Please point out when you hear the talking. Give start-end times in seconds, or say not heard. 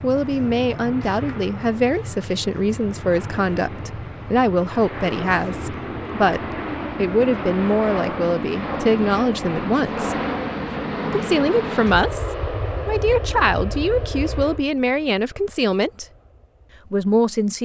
0.0-10.2, 11.1-16.1, 16.9-17.5.